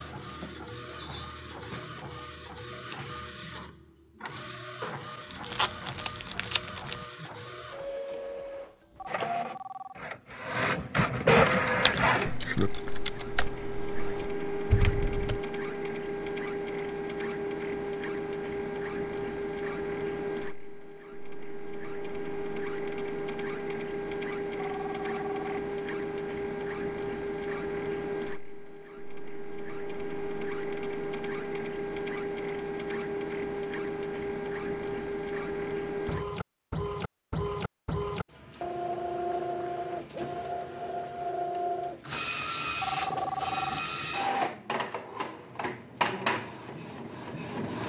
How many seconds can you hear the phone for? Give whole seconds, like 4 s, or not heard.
3 s.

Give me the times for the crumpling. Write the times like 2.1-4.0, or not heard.
5.3-7.0.